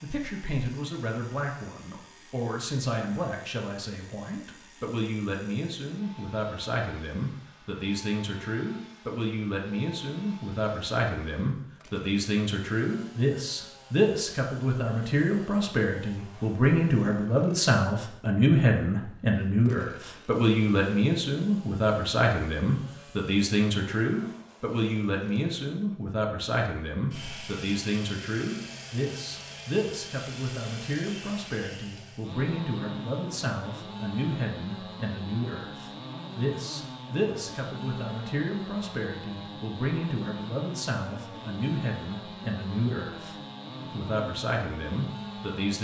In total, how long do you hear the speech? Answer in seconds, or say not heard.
46 s.